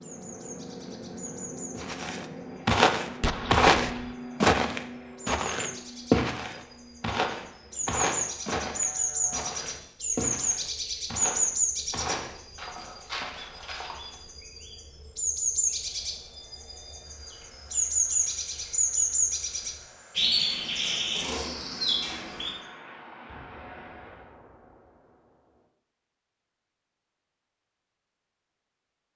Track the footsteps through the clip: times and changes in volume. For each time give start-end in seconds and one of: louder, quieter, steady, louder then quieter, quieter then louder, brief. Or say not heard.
1.8-14.2 quieter.